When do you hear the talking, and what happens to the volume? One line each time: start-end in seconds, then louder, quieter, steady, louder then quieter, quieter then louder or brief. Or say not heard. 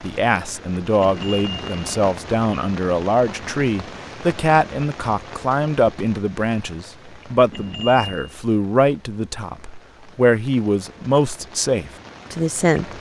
0.0-12.9 steady.